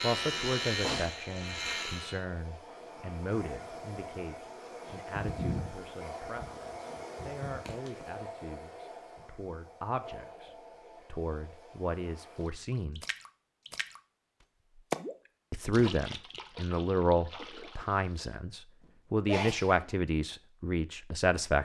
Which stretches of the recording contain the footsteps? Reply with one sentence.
You can't hear the footsteps here.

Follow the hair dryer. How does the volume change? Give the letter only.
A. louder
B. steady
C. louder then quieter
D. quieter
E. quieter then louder
C.